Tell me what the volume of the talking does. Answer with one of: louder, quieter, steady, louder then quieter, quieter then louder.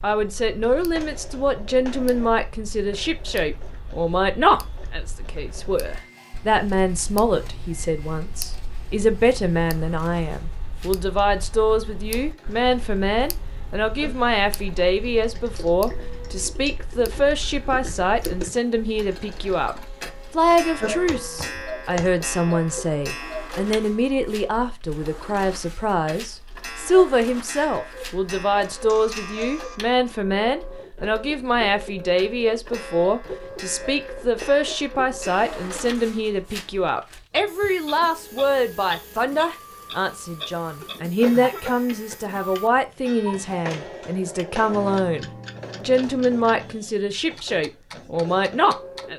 steady.